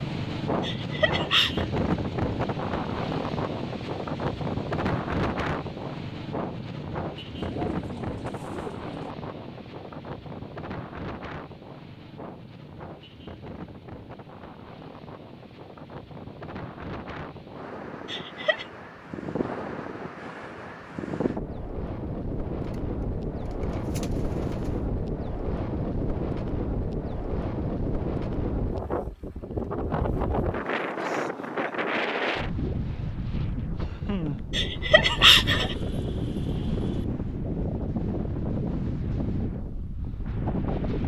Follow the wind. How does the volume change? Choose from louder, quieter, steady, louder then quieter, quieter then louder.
quieter then louder.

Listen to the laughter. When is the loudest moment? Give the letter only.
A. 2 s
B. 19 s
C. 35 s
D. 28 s
C.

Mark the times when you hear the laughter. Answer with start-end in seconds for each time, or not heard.
0.6-1.6, 18.1-18.6, 34.5-35.8.